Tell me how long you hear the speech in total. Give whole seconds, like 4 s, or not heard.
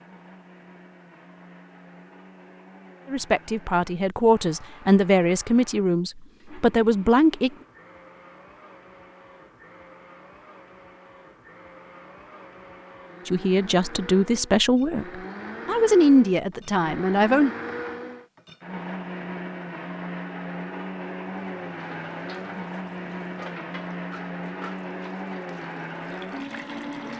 9 s.